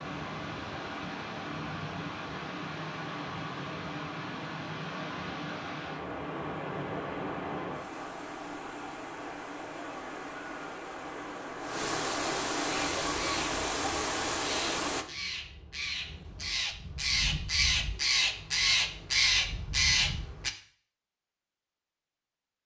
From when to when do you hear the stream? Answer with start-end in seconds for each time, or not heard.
0.0-15.1.